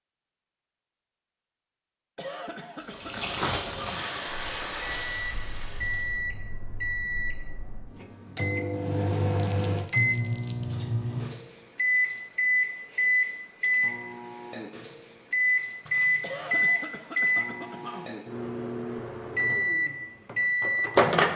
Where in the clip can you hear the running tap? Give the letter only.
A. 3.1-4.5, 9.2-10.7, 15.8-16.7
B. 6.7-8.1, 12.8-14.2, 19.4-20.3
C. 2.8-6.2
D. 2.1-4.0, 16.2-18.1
C.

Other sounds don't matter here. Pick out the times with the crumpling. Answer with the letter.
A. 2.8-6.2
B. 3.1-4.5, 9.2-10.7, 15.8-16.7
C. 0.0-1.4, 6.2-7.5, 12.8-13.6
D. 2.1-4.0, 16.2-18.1
B.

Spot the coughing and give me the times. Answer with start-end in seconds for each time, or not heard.
2.1-4.0, 16.2-18.1.